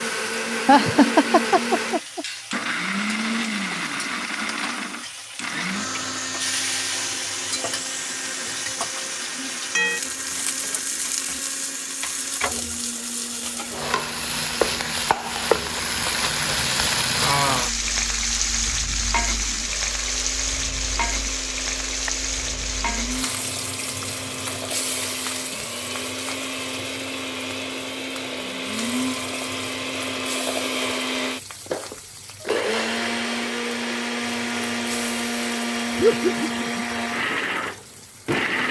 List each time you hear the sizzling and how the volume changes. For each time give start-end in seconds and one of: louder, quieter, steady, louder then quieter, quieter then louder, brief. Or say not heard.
0.0-38.5 louder then quieter.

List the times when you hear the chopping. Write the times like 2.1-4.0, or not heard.
21.6-22.2.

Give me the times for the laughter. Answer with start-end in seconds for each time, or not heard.
0.7-2.2, 36.0-36.9.